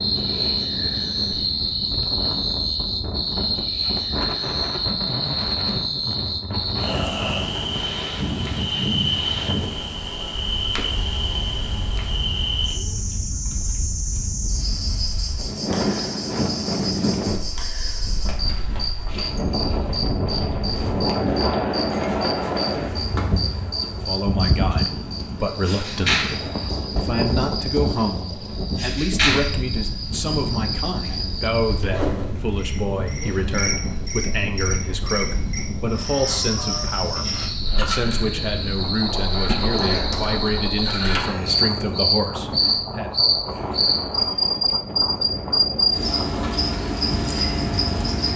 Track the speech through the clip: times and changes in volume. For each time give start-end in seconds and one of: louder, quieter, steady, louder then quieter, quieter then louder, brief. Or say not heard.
23.9-43.1 steady.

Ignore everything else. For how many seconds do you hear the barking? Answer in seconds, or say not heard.
not heard.